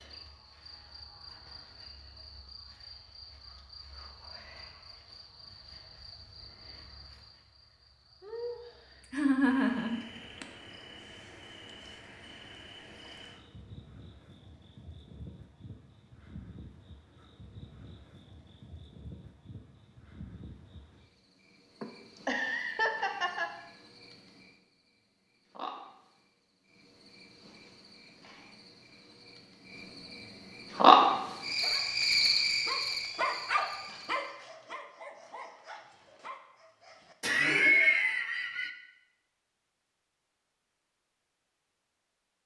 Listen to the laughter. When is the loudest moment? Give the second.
38 s.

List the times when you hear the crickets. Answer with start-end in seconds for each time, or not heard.
0.0-34.2.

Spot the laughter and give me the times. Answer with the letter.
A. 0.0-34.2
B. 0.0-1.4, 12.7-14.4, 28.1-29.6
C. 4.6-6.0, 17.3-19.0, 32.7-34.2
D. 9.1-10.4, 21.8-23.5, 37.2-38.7
D.